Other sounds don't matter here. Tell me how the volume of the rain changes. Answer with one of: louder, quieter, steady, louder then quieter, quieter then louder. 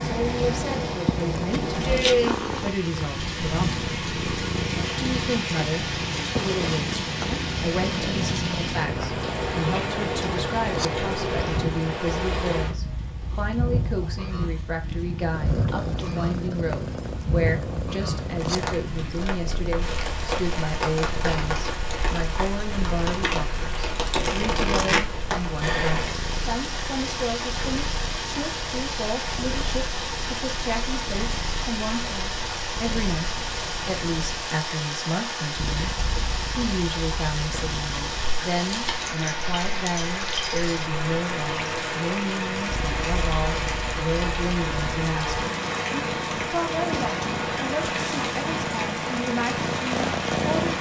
steady.